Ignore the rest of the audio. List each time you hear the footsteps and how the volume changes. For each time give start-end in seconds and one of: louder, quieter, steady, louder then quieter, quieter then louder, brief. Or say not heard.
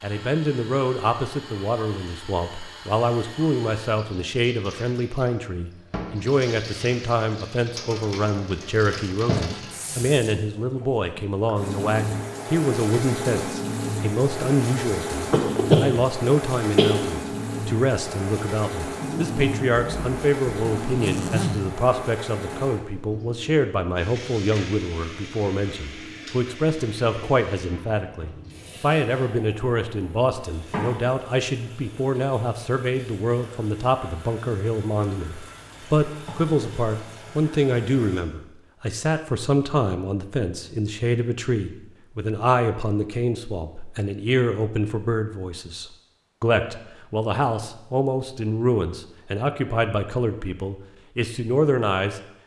not heard.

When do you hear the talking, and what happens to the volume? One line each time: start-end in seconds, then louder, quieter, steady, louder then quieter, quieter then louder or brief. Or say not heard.
0.0-52.2 steady.